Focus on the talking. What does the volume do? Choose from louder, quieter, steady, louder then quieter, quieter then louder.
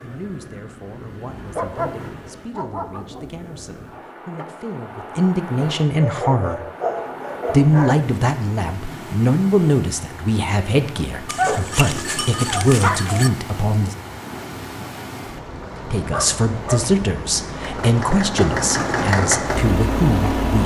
louder.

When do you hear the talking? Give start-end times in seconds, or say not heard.
0.0-6.6, 7.5-13.9, 15.8-20.6.